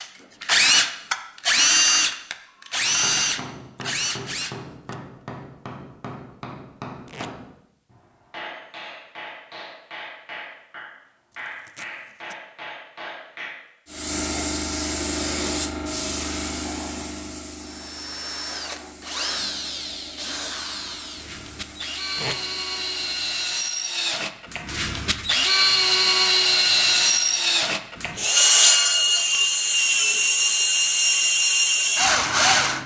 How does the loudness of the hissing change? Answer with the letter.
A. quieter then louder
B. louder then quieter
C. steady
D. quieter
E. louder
D.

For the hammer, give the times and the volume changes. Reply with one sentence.
The hammer can be heard from 2.8 to 13.6 s, at a steady volume.